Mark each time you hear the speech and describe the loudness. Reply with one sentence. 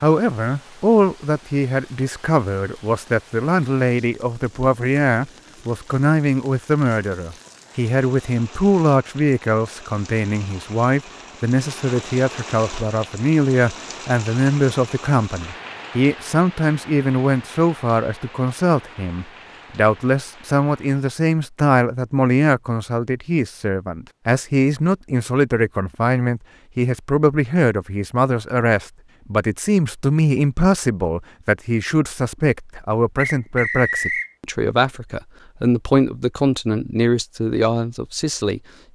You can hear the speech from 0.0 to 38.6 s, at a steady volume.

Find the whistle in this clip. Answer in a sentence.
The whistle can be heard from 33.1 to 34.3 s.